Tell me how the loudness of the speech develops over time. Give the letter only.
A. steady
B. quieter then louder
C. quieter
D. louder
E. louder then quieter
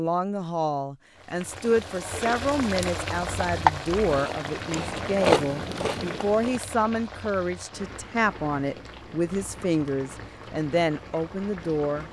A.